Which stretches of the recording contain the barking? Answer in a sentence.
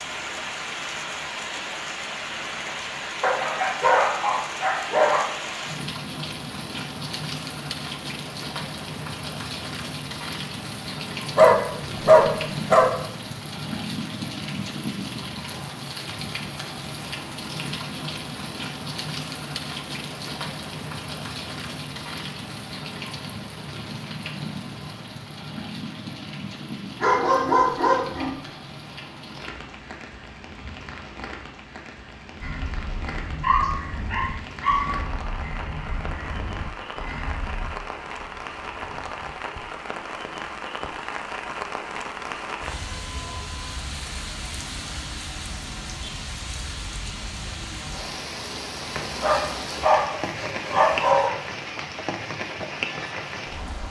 You can hear the barking from 3.2 to 5.2 s, from 11.2 to 12.9 s, from 27.0 to 28.4 s, from 33.4 to 34.9 s and from 49.0 to 51.3 s.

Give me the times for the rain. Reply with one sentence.
You can hear the rain from 0.0 to 53.8 s.